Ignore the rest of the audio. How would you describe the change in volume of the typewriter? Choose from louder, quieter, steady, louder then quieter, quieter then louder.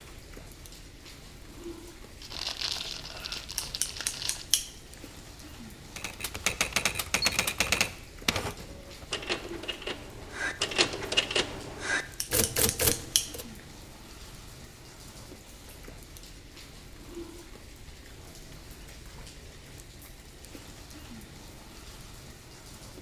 quieter then louder.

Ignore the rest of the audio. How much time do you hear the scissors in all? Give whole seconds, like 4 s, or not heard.
2 s.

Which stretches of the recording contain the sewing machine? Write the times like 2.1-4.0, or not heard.
not heard.